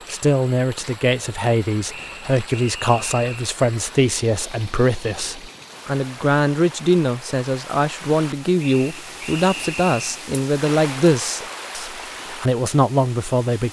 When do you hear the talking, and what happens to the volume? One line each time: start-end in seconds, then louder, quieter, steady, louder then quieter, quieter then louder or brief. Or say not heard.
0.1-13.6 steady.